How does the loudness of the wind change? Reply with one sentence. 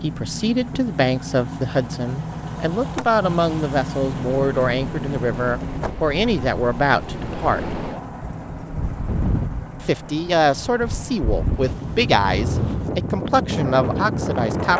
The volume of the wind goes up.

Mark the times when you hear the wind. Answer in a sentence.
You can hear the wind from 4.0 to 14.7 s.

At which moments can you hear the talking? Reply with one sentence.
You can hear the talking from 0.0 to 7.7 s and from 9.8 to 14.7 s.